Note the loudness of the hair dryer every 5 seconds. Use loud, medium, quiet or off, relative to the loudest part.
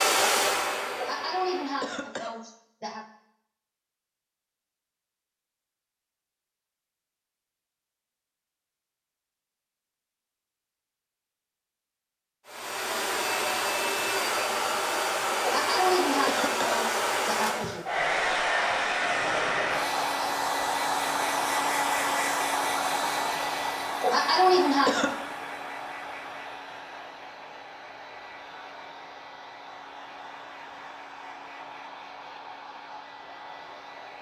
loud, off, loud, loud, loud, quiet, quiet.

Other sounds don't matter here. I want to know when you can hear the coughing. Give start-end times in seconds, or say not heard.
0.9-3.0, 15.4-17.9, 24.0-25.1.